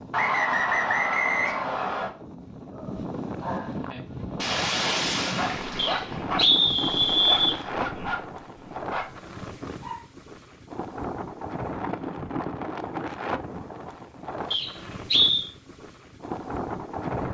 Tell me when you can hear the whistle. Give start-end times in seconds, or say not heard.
0.1-2.1, 5.8-7.6, 14.5-15.5.